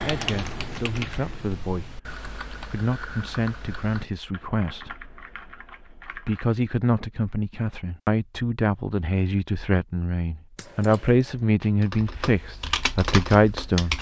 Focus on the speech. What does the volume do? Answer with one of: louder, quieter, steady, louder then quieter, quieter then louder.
louder.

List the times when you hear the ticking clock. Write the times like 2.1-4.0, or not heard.
not heard.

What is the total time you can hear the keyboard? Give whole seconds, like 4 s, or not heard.
10 s.